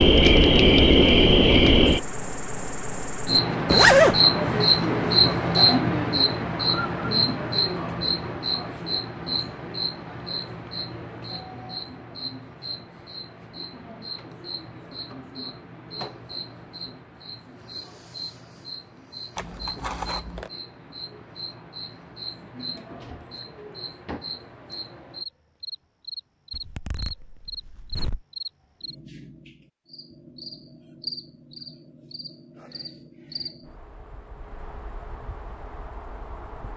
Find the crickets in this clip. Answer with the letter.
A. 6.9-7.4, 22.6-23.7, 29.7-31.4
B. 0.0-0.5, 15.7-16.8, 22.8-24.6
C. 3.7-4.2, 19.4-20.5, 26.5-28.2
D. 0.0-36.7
D.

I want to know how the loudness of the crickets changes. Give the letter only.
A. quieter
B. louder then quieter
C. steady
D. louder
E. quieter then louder
A.